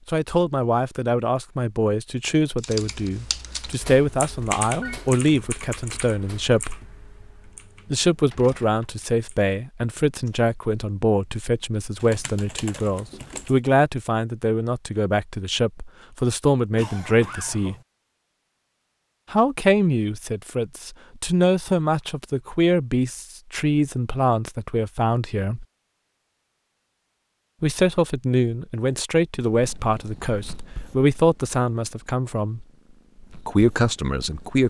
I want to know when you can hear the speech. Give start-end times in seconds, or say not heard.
0.1-6.8, 7.9-17.8, 19.3-25.6, 27.6-32.6, 33.5-34.6.